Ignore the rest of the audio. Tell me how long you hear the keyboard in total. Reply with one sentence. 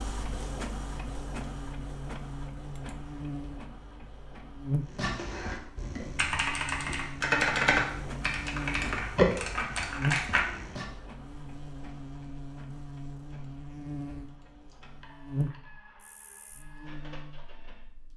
The keyboard can be heard for 6 seconds in total.